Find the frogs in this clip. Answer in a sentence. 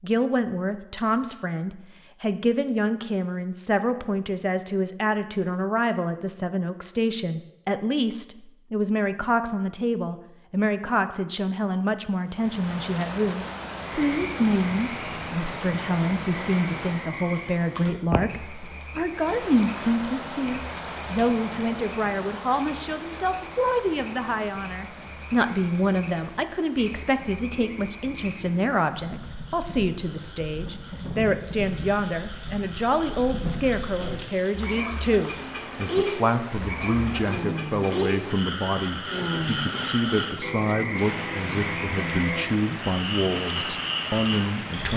The frogs can be heard from 13.8 to 44.9 s.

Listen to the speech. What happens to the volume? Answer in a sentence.
The loudness of the speech stays about the same.